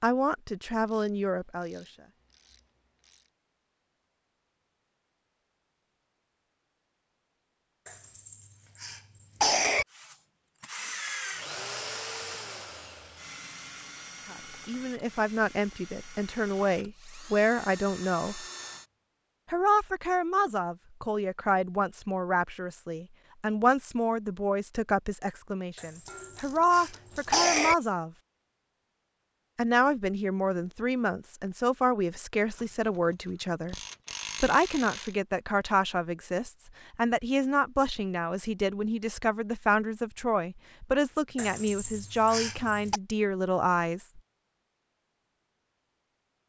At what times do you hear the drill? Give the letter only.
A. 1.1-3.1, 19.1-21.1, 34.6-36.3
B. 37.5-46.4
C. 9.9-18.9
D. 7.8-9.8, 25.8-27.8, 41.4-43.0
C.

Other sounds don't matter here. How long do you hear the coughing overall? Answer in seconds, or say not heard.
6 s.